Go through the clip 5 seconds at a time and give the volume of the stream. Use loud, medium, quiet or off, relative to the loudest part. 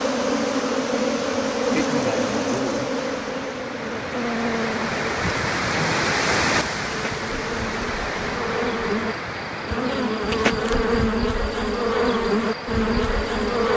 medium, loud, medium.